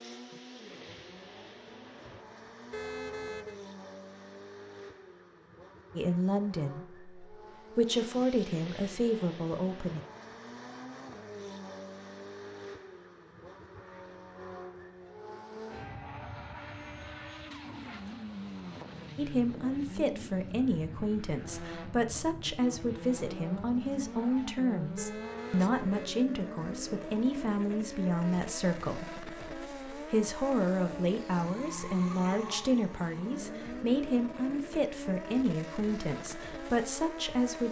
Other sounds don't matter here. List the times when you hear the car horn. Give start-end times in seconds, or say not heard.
2.7-3.6, 24.9-26.1.